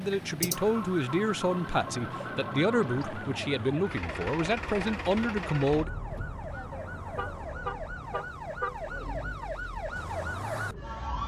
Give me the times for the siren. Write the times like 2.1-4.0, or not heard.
0.0-11.2.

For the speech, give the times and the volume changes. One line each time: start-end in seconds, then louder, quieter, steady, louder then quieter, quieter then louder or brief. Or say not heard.
0.0-5.9 steady.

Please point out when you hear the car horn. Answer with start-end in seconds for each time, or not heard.
7.0-9.4.